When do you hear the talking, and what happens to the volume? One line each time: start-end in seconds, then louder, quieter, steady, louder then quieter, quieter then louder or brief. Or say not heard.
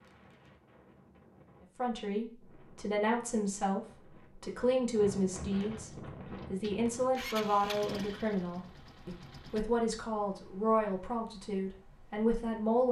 1.8-12.8 steady.